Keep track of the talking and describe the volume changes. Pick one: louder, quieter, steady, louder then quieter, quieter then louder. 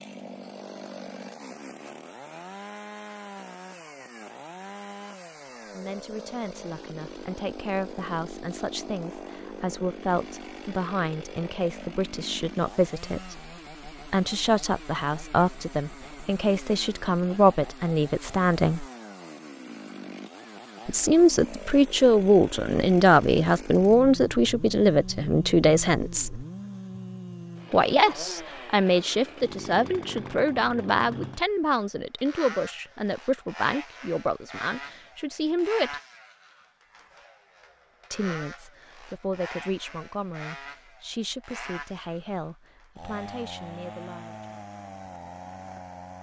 louder then quieter.